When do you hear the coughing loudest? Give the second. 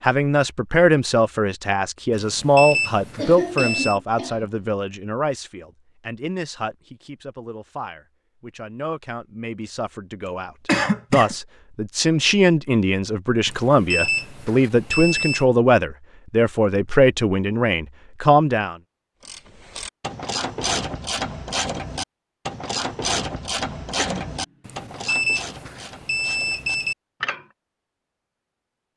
11 s.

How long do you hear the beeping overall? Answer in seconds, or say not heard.
6 s.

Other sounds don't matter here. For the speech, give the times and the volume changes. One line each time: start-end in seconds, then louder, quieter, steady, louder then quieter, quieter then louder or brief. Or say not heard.
0.0-18.8 quieter then louder.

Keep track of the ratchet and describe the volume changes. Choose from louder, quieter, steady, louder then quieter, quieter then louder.
quieter.